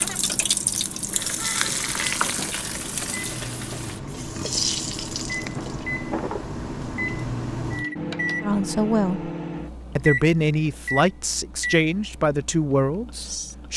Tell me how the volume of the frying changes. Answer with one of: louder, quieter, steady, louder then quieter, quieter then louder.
quieter then louder.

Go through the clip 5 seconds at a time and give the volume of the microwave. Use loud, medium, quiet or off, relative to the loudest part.
medium, loud, loud.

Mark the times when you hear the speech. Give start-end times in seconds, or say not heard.
8.4-9.3, 9.9-13.7.